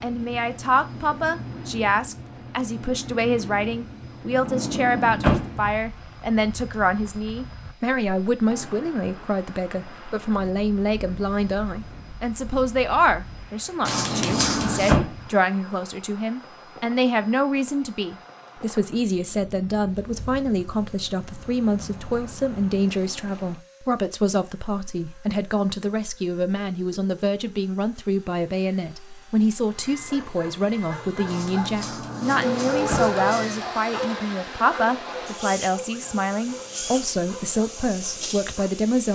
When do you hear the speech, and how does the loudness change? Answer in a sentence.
The speech can be heard from 0.0 to 39.1 s, at a steady volume.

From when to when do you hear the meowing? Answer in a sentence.
You can hear the meowing from 13.8 to 14.9 s and from 31.2 to 33.7 s.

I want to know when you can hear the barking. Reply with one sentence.
The barking can be heard from 30.1 to 38.7 s.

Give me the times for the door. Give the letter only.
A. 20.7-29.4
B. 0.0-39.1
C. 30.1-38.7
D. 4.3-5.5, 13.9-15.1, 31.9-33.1
D.